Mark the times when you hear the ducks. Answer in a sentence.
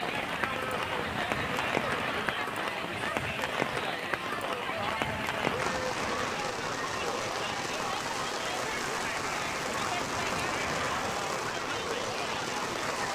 You can hear the ducks from 0.0 to 2.5 s, from 5.0 to 6.5 s and from 9.3 to 11.2 s.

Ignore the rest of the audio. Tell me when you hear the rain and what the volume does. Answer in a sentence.
The rain can be heard from 0.0 to 13.1 s, at a steady volume.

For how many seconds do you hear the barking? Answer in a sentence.
You can't hear the barking here.